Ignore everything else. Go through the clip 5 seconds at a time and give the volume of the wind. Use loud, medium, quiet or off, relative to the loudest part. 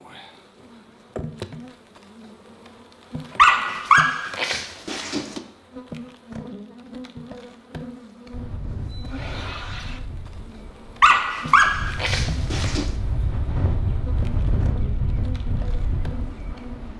off, medium, loud, loud.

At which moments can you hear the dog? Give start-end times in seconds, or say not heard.
3.4-5.4, 11.0-12.9.